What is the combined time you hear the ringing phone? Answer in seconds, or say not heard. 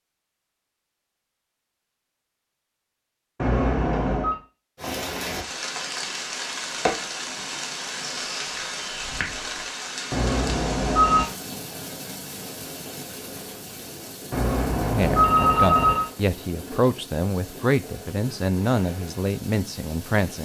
4 s.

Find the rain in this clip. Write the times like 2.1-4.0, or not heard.
4.8-20.4.